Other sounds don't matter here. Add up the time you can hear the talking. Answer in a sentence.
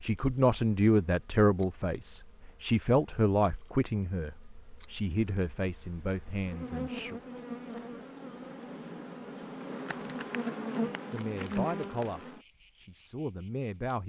You can hear the talking for 10 seconds altogether.